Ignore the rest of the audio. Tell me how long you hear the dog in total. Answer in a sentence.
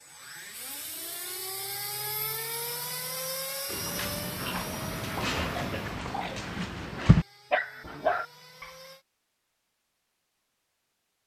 The dog can be heard for 5 seconds in total.